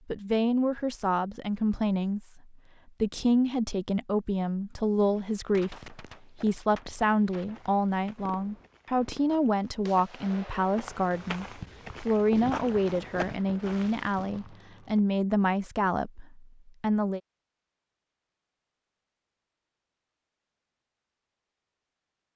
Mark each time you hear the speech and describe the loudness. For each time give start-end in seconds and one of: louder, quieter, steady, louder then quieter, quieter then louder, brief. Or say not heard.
0.1-17.2 steady.